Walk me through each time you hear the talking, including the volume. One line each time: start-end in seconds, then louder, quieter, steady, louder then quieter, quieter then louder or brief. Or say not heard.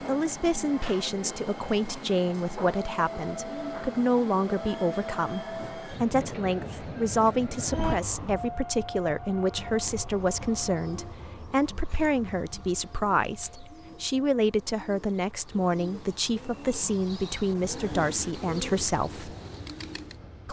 0.0-19.4 steady.